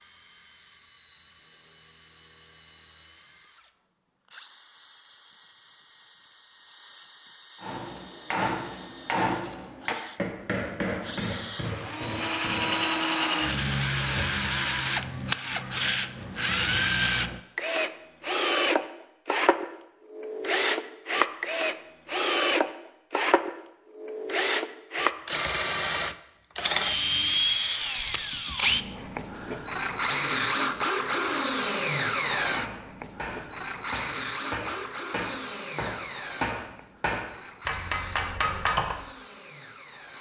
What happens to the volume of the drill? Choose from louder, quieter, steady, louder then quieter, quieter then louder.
louder then quieter.